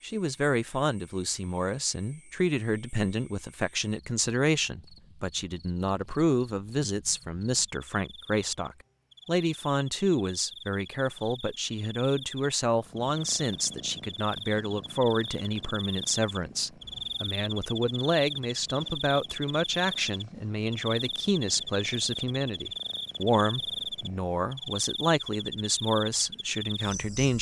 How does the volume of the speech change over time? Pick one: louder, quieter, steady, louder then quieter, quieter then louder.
steady.